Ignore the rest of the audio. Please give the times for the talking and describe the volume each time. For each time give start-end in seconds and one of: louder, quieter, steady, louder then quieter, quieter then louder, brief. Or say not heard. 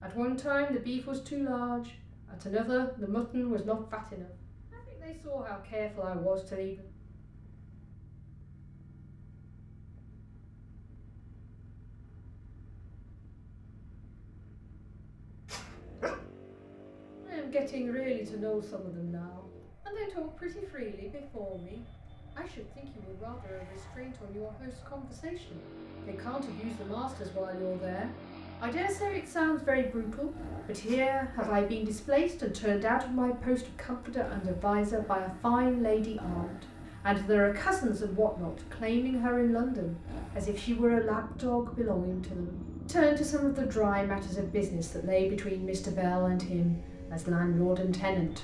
0.0-6.8 quieter then louder
17.2-48.3 louder.